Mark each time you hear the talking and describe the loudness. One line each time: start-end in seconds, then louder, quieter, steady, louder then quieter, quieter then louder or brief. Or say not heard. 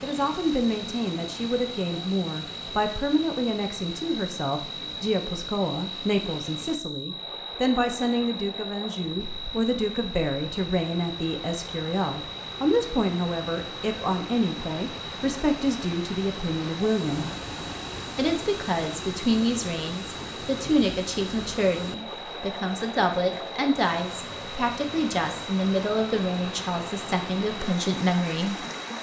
0.0-17.2 steady
18.1-28.6 steady.